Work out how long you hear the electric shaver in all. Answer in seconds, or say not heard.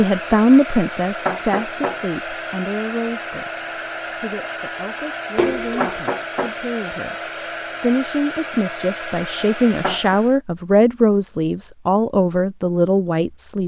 not heard.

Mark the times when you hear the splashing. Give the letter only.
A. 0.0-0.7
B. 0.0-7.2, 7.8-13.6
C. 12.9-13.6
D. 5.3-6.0
D.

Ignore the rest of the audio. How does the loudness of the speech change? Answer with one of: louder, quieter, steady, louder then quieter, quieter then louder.
quieter then louder.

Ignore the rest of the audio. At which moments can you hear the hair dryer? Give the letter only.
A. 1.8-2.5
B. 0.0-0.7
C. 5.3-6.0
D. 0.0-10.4
D.